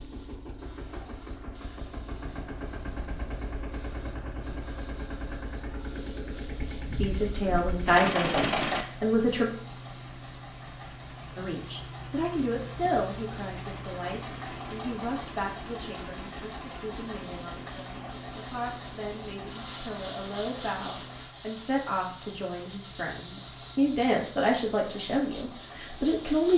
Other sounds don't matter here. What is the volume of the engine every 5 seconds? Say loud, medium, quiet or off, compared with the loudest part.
medium, loud, medium, medium, quiet, quiet.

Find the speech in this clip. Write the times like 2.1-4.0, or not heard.
7.0-9.5, 11.3-26.5.